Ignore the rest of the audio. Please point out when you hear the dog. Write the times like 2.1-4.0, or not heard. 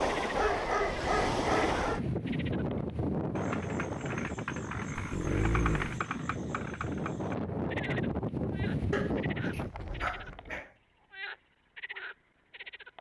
0.3-2.0, 5.0-6.0, 8.9-10.7.